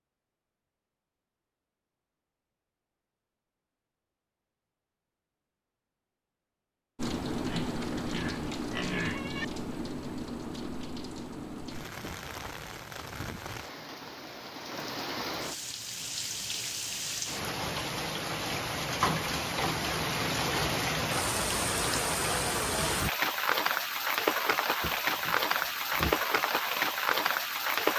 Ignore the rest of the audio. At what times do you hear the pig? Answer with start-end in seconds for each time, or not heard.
7.5-9.4, 24.8-26.2.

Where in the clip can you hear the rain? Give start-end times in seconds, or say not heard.
7.0-27.9.